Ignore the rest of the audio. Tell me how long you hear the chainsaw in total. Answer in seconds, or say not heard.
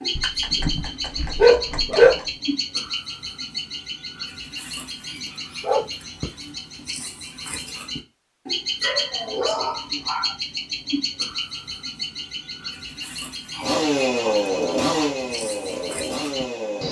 3 s.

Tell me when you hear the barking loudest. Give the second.
2 s.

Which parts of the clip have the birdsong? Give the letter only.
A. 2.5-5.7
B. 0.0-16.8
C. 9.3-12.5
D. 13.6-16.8
B.